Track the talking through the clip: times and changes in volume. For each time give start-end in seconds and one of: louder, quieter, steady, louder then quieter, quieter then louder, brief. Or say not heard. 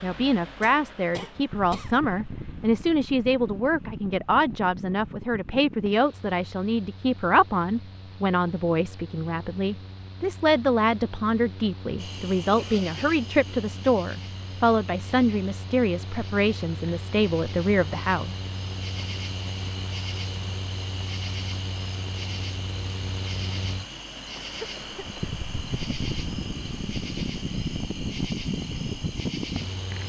0.0-18.3 steady.